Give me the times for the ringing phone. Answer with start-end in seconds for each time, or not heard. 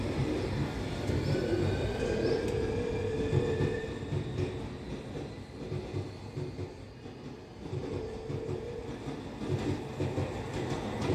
1.9-3.9, 7.8-8.9.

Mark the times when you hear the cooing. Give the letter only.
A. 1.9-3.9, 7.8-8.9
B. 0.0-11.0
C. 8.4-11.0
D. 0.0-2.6
D.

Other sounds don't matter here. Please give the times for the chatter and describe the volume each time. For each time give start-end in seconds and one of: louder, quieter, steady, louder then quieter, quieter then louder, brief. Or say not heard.
not heard.